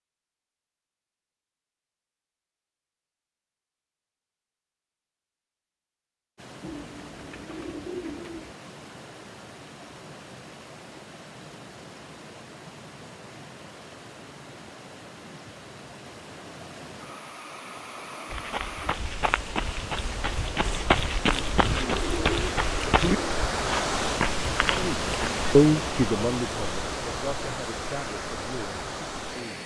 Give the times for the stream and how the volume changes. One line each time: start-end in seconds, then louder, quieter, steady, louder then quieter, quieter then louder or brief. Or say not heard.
6.3-29.6 louder.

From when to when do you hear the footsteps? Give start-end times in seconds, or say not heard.
18.3-25.4.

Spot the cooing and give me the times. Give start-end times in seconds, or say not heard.
6.6-8.6, 21.2-23.4.